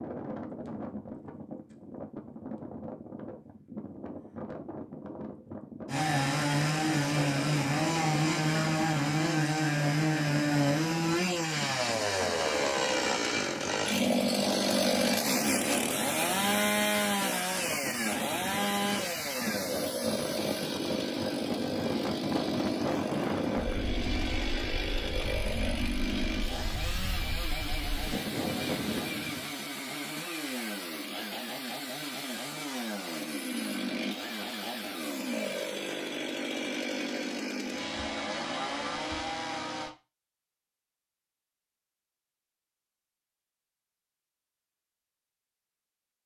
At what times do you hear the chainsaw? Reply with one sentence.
The chainsaw can be heard from 5.8 to 40.0 s.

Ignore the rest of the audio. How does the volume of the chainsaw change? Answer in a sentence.
The volume of the chainsaw goes down.